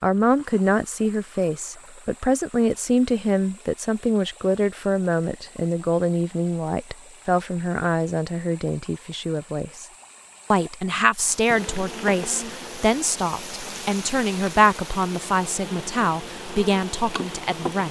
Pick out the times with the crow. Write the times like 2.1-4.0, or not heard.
not heard.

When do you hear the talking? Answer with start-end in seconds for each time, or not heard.
0.0-9.8, 10.5-17.8.